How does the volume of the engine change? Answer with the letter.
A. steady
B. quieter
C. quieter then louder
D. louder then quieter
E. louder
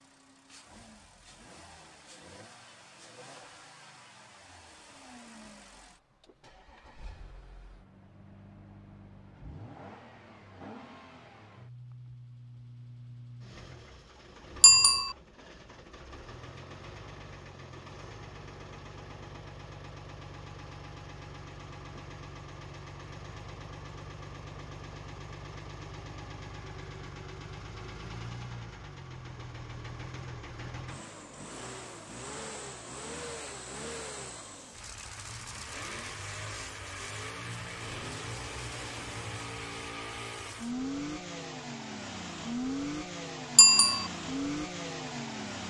E.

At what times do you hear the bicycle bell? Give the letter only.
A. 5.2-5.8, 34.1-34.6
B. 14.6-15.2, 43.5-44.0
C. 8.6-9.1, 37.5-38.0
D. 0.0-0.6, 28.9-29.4
B.